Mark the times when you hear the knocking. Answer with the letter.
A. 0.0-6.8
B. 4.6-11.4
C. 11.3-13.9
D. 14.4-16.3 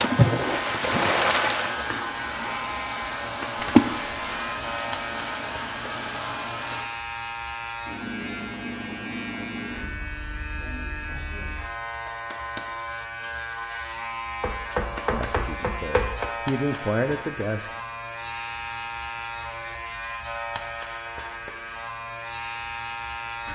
D.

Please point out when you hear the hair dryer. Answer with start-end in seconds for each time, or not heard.
0.0-6.8.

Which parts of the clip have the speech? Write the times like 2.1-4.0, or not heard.
15.1-17.7.